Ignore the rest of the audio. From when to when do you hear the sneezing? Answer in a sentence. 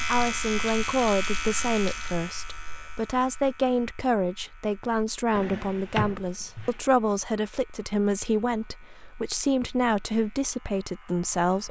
You can't hear the sneezing here.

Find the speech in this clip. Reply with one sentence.
You can hear the speech from 0.0 to 11.6 s.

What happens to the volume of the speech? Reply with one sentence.
The loudness of the speech stays about the same.